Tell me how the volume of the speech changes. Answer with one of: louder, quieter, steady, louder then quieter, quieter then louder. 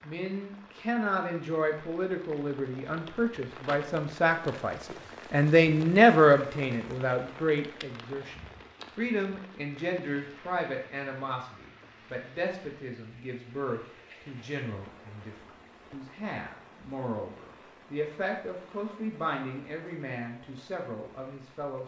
louder then quieter.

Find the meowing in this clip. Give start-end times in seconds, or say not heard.
not heard.